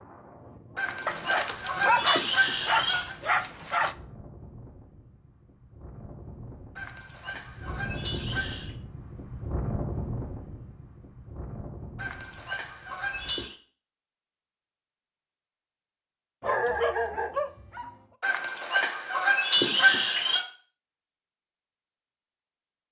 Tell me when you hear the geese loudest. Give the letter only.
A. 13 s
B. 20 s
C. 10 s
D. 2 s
B.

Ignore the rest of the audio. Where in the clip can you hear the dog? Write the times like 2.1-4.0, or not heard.
1.1-4.0, 16.4-17.9.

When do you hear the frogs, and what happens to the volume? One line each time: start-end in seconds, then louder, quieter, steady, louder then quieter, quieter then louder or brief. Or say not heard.
not heard.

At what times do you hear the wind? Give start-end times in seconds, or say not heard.
0.0-13.5.